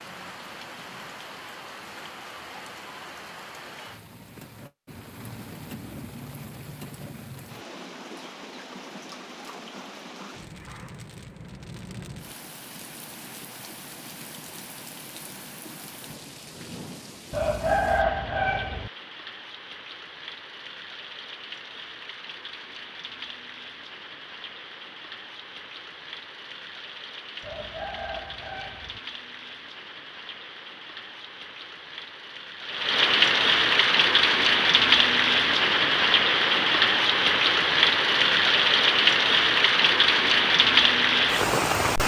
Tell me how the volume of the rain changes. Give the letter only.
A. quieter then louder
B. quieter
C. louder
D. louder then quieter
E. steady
C.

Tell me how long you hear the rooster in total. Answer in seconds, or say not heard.
3 s.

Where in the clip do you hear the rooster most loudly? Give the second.
18 s.